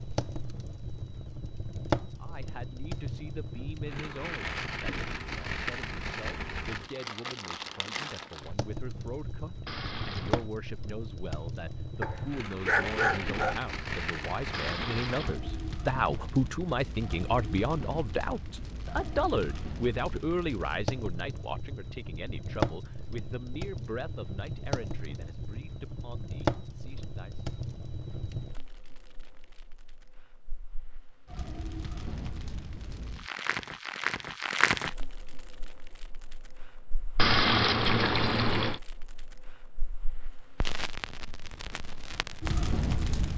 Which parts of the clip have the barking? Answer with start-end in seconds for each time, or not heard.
12.0-13.6.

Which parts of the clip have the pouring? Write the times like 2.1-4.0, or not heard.
9.7-10.4, 14.5-15.4, 37.1-38.8.